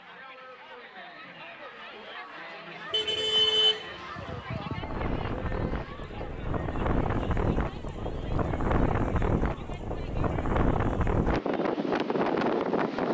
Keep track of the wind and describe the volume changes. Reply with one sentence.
The loudness of the wind goes up.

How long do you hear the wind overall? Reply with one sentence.
You can hear the wind for 8 seconds altogether.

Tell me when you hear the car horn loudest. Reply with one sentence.
The volume of the car horn peaks at 4 seconds.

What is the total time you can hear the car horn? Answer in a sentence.
The car horn can be heard for 2 seconds in total.